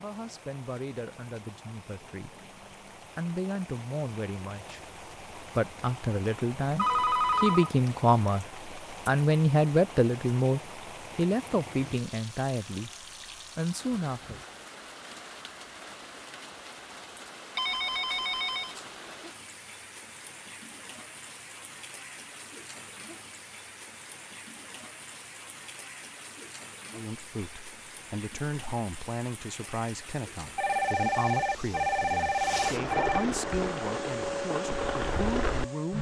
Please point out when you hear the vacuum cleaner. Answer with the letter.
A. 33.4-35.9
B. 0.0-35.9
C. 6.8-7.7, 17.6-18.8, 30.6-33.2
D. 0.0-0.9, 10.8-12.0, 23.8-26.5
A.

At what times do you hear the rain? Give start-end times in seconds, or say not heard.
0.0-35.9.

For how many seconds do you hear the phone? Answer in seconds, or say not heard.
5 s.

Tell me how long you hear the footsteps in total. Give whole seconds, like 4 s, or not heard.
not heard.